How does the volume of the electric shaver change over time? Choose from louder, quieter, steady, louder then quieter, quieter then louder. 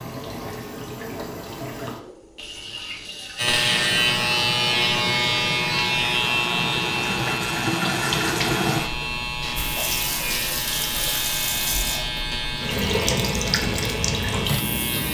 quieter.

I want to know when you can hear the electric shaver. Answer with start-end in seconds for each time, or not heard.
3.4-15.0.